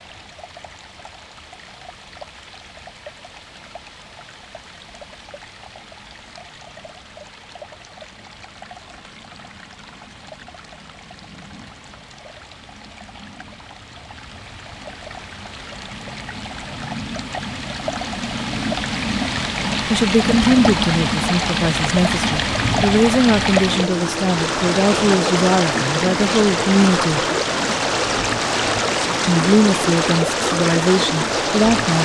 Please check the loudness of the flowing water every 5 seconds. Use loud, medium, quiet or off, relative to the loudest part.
quiet, quiet, quiet, medium, loud, loud, loud.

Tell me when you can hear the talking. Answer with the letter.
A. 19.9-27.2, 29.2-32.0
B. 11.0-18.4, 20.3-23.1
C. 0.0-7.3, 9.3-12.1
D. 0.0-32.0
A.